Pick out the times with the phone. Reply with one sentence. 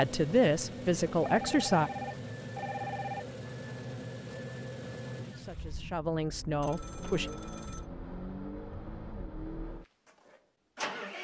You can hear the phone from 1.2 to 3.2 s and from 6.6 to 7.8 s.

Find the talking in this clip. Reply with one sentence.
You can hear the talking from 0.0 to 1.9 s and from 5.2 to 7.3 s.